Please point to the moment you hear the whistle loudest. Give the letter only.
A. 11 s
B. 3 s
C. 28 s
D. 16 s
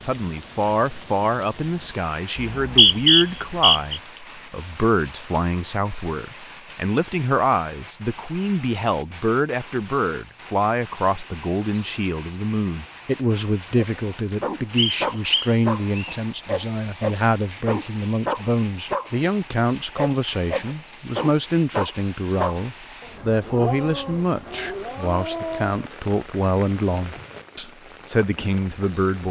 B.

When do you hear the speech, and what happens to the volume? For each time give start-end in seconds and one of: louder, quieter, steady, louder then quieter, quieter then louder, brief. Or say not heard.
0.1-29.2 steady.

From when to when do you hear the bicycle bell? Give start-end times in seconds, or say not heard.
not heard.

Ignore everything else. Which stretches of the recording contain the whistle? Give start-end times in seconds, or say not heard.
2.4-4.0, 14.8-16.1.